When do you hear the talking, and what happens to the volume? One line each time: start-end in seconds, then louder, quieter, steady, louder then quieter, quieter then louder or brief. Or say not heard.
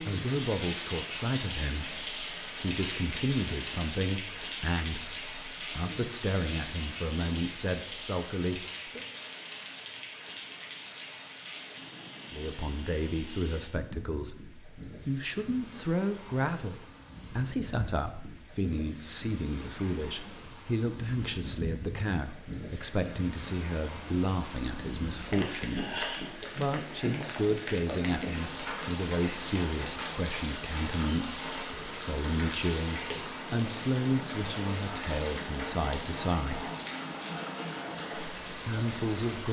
0.0-9.0 steady
12.3-36.7 steady
38.6-39.4 brief.